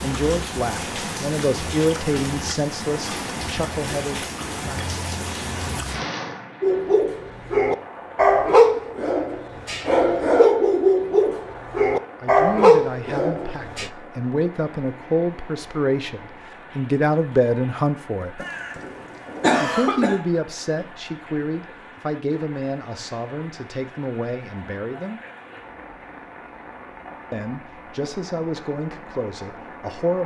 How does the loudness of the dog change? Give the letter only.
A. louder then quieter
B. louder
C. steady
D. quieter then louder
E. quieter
C.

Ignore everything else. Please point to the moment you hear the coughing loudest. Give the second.
20 s.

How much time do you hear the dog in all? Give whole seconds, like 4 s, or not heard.
7 s.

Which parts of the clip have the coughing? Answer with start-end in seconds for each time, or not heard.
18.4-20.2.